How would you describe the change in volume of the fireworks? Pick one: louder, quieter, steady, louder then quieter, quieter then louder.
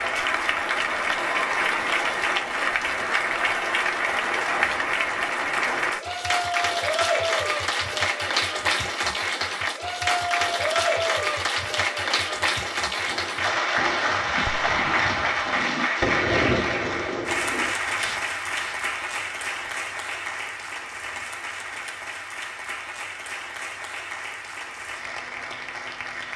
louder then quieter.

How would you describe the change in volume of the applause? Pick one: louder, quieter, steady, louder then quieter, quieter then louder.
quieter.